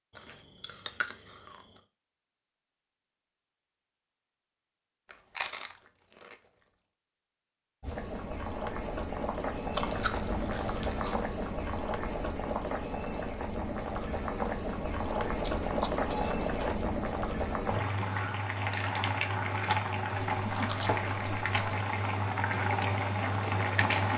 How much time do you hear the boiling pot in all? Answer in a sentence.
The boiling pot can be heard for 16 seconds in total.